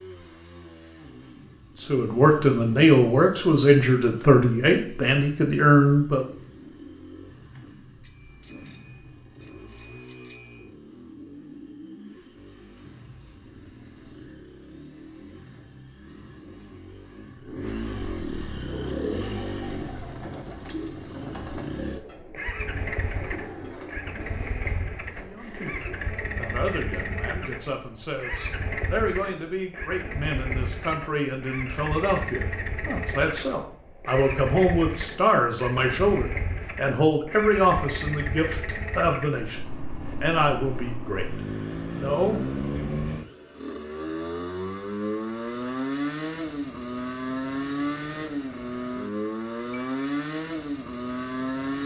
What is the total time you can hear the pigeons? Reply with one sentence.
You can hear the pigeons for 8 seconds altogether.